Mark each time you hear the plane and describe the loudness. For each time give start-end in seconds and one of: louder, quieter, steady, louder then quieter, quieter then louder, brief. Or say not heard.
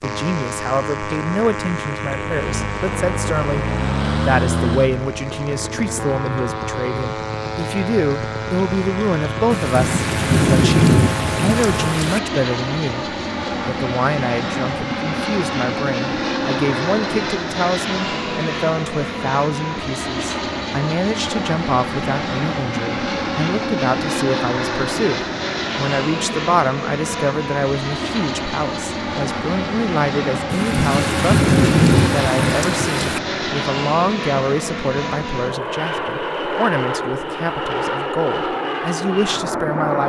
0.0-40.0 steady.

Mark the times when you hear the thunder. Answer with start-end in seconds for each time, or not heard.
9.5-12.2, 30.5-33.2.